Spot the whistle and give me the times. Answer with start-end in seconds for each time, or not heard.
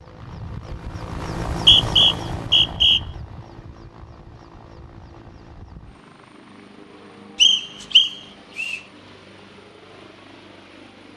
1.5-3.0, 7.4-8.8.